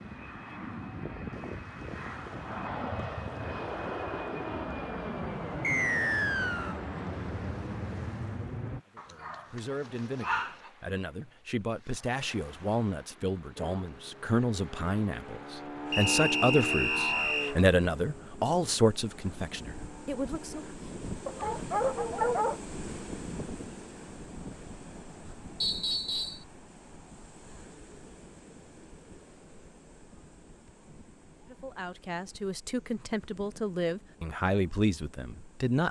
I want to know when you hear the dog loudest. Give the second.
22 s.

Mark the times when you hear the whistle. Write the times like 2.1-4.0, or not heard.
5.6-6.8, 15.9-17.6, 25.6-26.4.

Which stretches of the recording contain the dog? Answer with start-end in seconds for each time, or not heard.
8.9-10.7, 21.2-22.6.